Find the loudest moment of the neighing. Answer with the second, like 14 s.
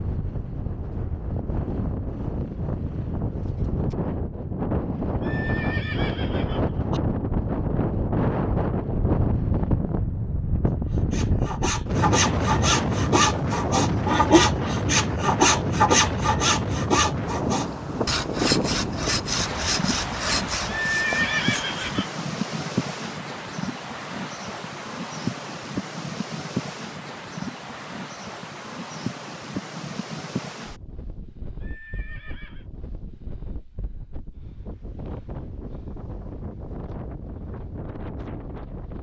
21 s.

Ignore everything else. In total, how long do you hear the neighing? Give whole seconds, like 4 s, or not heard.
4 s.